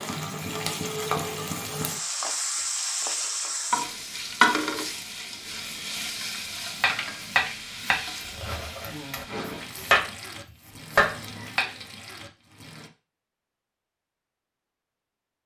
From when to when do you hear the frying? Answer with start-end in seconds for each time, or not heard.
0.0-12.9.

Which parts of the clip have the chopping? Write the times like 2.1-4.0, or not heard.
6.8-10.1, 10.9-11.7.